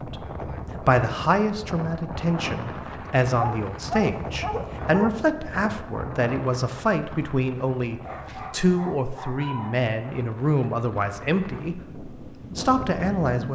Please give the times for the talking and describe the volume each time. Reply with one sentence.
The talking can be heard from 0.1 to 13.5 s, at a steady volume.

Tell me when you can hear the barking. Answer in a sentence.
You can hear the barking from 3.4 to 5.2 s and from 8.0 to 9.8 s.